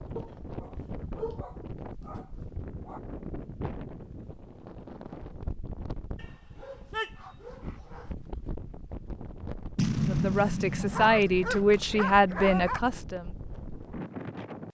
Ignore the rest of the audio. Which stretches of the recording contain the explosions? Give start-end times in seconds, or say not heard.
9.8-12.1.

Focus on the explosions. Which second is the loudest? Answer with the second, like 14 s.
10 s.